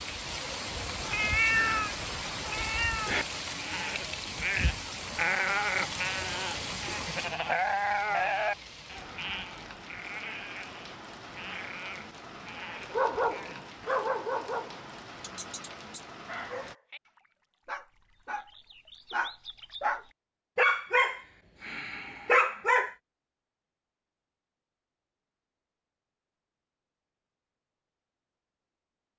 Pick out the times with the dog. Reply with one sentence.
The dog can be heard from 12.9 to 22.9 s.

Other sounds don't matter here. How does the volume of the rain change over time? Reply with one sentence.
The loudness of the rain goes down.